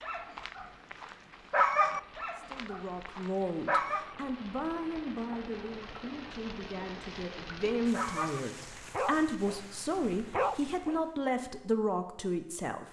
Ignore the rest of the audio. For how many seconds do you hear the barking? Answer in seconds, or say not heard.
7 s.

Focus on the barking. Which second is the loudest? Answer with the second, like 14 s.
2 s.